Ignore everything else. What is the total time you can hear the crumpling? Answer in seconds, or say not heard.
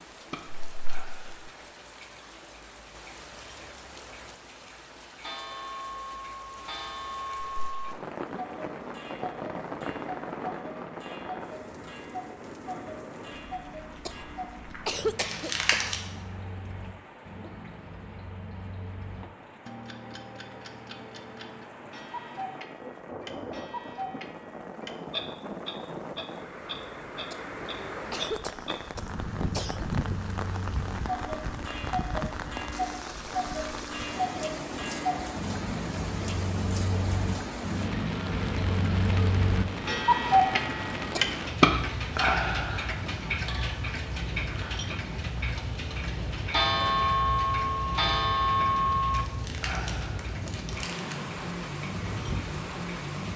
3 s.